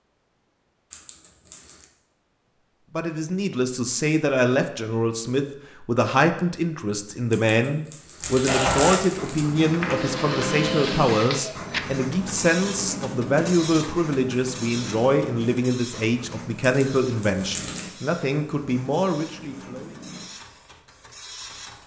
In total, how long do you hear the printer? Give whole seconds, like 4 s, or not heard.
13 s.